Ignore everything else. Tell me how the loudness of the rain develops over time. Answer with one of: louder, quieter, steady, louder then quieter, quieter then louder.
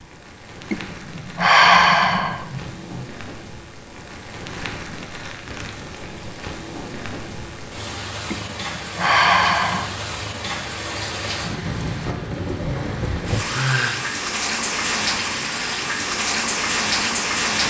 louder.